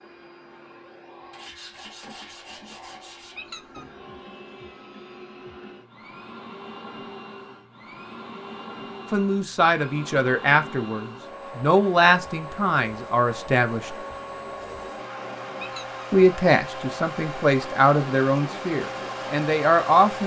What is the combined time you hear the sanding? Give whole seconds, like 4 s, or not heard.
2 s.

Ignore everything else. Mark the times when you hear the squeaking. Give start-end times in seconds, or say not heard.
3.4-3.9, 15.6-16.0.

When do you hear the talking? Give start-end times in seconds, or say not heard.
9.1-13.9, 16.1-20.2.